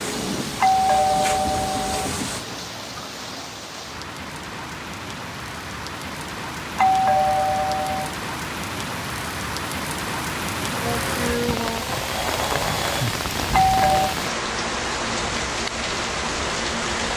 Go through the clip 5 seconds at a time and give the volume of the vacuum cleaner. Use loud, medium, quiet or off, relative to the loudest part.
loud, off, loud, off.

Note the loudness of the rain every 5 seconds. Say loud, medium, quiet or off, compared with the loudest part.
medium, medium, loud, loud.